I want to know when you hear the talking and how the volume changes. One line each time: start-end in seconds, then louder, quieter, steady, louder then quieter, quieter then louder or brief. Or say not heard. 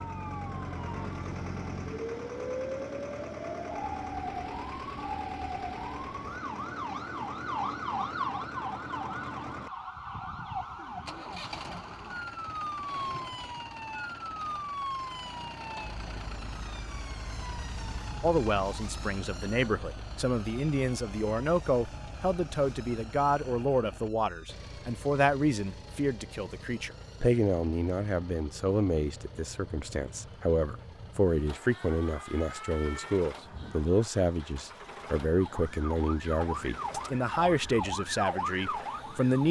18.2-39.4 steady.